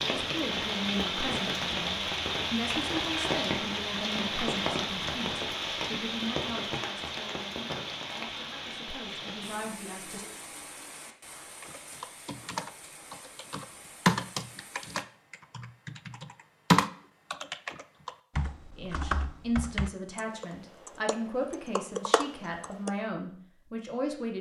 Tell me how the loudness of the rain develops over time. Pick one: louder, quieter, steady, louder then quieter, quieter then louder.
quieter.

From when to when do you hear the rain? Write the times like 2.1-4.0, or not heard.
0.0-15.1.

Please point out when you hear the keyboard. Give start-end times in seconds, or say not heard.
11.6-22.9.